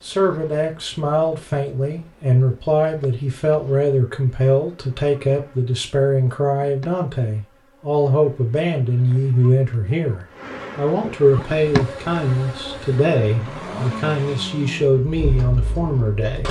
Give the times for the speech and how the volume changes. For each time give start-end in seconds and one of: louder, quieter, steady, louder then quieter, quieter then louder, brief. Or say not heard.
0.0-16.4 steady.